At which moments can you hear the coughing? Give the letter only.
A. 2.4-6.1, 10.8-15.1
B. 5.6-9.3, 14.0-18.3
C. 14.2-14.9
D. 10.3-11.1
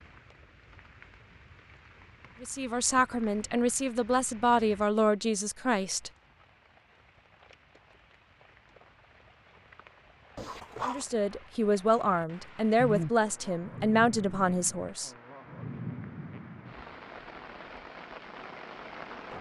D.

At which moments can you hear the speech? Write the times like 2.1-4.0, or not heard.
2.4-6.1, 10.8-15.1.